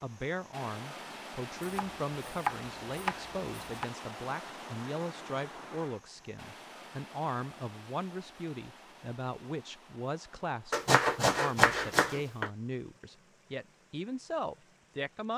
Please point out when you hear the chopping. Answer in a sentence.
The chopping can be heard from 1.6 to 3.9 s and from 10.7 to 12.5 s.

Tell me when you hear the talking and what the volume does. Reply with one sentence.
The talking can be heard from 0.0 to 15.3 s, at a steady volume.